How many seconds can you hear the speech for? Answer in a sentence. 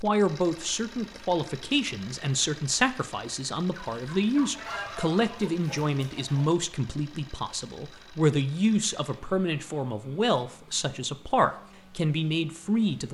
You can hear the speech for 13 seconds altogether.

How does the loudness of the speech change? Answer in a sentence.
The loudness of the speech stays about the same.